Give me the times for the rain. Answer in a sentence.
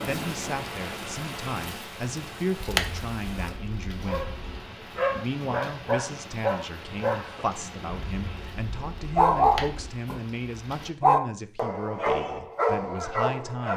The rain can be heard from 0.0 to 10.9 s.